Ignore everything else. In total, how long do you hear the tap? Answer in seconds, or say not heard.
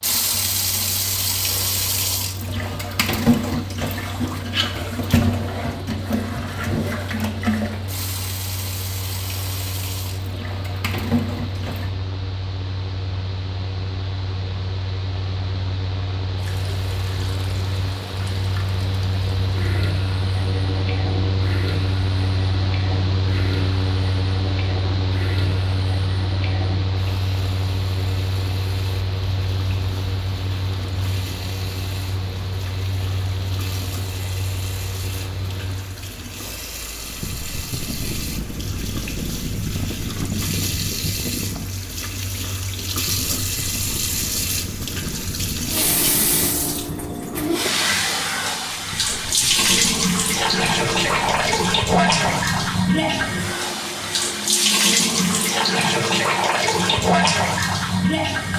54 s.